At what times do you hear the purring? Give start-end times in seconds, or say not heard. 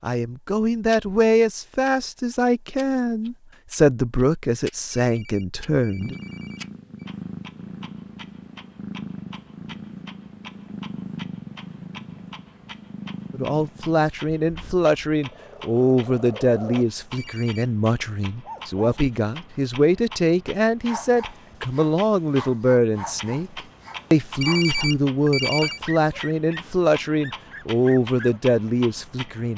6.0-16.9.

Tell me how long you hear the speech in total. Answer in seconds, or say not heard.
22 s.